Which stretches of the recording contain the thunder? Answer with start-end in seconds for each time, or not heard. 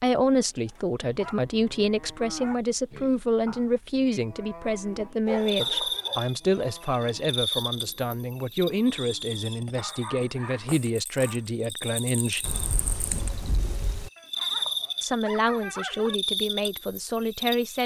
12.4-14.1.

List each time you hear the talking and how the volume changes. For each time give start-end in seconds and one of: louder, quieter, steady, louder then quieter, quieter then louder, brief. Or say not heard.
0.0-12.6 steady
15.0-17.8 brief.